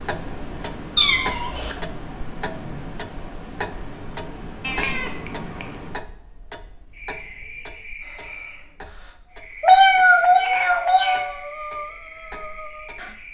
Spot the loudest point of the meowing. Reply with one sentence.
The loudest moment of the meowing is at 10 seconds.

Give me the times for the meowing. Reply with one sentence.
You can hear the meowing from 0.9 to 1.8 s, from 4.6 to 5.8 s and from 9.6 to 11.3 s.